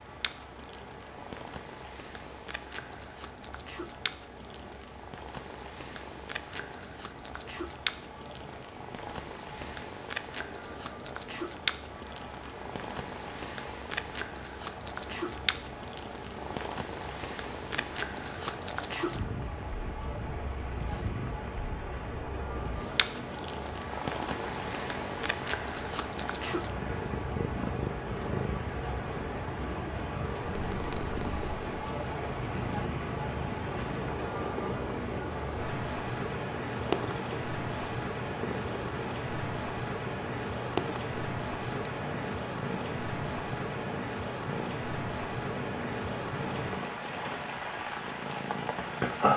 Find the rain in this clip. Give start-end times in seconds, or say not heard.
0.0-49.3.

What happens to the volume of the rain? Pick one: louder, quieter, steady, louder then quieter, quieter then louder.
louder.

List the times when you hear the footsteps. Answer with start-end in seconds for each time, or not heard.
not heard.